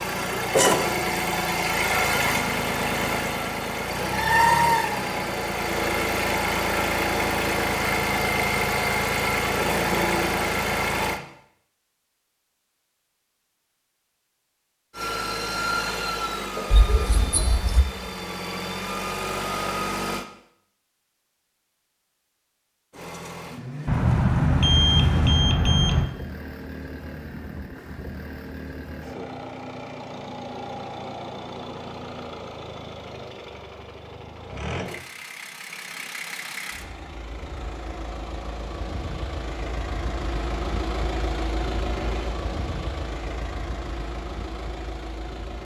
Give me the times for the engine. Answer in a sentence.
You can hear the engine from 0.0 to 11.2 s, from 14.9 to 20.2 s and from 22.9 to 45.5 s.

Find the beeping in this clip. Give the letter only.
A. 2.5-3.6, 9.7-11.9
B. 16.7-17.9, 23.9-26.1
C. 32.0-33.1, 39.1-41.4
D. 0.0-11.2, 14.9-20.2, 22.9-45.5
B.